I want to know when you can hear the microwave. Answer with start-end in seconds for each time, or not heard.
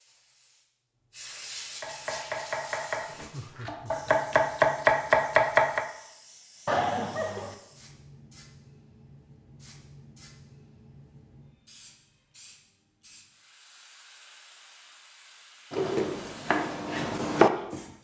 not heard.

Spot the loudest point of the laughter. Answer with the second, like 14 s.
7 s.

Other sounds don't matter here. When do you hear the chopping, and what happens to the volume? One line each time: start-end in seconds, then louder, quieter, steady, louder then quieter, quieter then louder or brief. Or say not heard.
1.8-5.8 louder
15.7-17.8 brief.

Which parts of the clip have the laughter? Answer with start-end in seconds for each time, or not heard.
3.1-4.1, 6.7-7.5, 15.7-16.1.